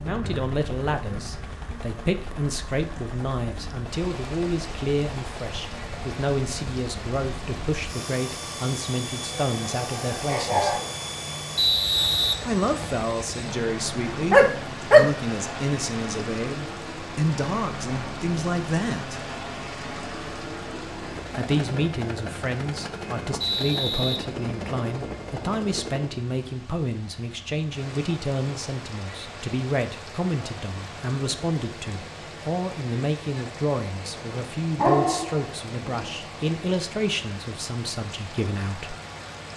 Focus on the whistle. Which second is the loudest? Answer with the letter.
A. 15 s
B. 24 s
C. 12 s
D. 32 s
C.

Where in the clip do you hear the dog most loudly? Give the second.
15 s.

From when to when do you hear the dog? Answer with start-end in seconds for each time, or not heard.
9.5-10.8, 14.3-15.1, 34.3-36.1.